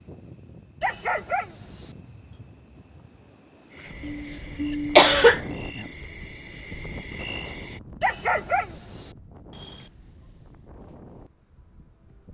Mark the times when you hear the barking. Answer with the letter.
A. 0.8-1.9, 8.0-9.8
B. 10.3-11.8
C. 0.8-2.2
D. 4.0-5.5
A.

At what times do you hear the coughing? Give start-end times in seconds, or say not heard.
4.0-5.5.